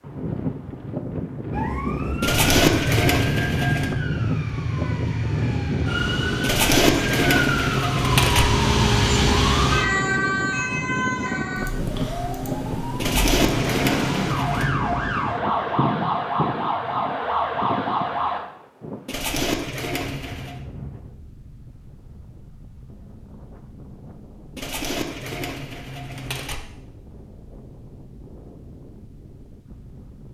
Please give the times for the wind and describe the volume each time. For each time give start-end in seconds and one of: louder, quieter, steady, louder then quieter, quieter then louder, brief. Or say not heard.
0.0-30.2 quieter.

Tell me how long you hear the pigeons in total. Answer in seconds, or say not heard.
9 s.